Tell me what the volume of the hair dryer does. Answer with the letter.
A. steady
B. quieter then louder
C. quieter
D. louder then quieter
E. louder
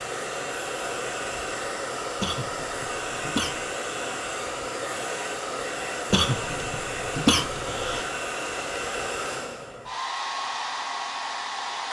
A.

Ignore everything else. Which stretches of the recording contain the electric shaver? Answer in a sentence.
You can't hear the electric shaver here.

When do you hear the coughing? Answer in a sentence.
The coughing can be heard from 2.1 to 3.7 s and from 6.1 to 8.1 s.